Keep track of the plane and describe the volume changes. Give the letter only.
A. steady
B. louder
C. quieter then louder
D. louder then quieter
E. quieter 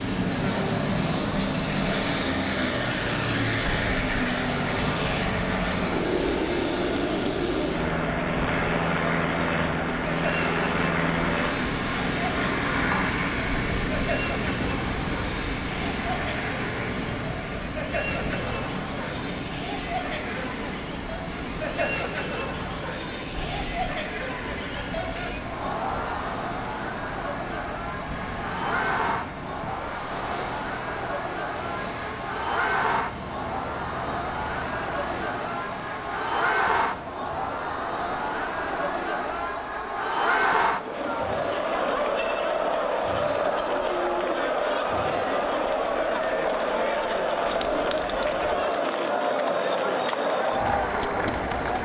E.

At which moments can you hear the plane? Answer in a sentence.
The plane can be heard from 0.0 to 36.4 s.